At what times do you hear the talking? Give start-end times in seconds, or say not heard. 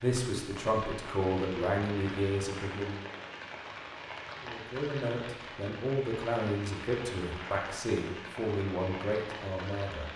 0.0-3.0, 4.4-10.1.